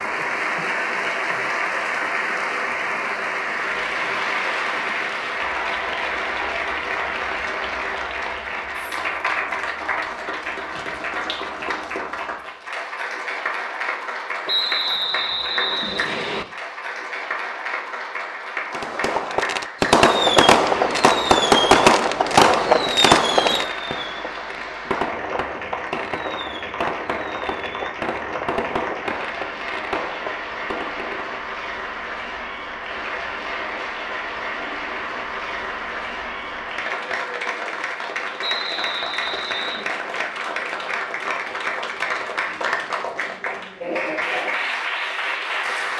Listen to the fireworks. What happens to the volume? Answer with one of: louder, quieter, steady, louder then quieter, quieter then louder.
quieter.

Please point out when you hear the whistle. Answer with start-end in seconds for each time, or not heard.
14.4-16.4, 38.4-39.9.